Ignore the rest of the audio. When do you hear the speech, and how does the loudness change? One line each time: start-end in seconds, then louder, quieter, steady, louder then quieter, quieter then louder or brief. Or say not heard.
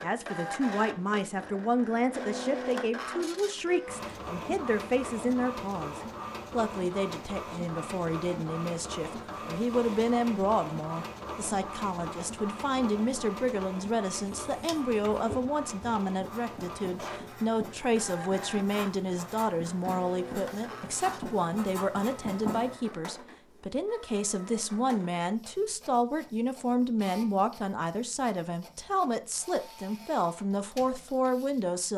0.0-31.9 steady.